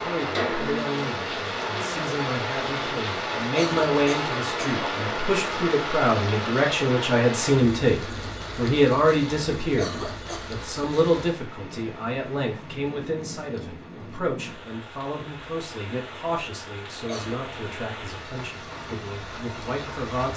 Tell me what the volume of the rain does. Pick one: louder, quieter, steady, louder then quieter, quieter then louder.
quieter.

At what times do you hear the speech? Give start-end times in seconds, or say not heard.
0.0-20.3.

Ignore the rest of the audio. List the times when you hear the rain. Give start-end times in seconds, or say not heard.
0.0-20.3.